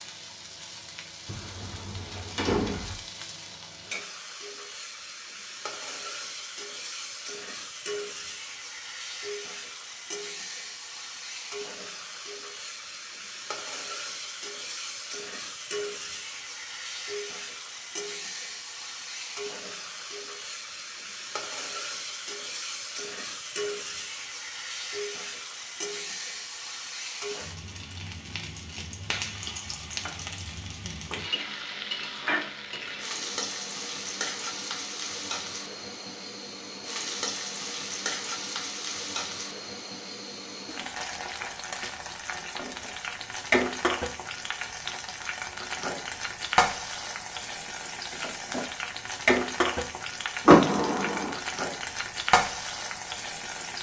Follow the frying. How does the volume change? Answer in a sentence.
The loudness of the frying goes up.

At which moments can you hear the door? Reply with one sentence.
You can hear the door from 1.2 to 3.0 s and from 50.5 to 51.4 s.